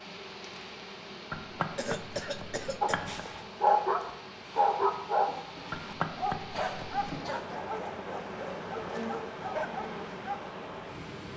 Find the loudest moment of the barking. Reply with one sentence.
The volume of the barking peaks at 4 seconds.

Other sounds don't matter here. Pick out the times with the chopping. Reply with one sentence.
The chopping can be heard from 1.3 to 3.2 s and from 5.7 to 7.3 s.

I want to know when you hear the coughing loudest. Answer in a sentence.
The loudest moment of the coughing is at 2 seconds.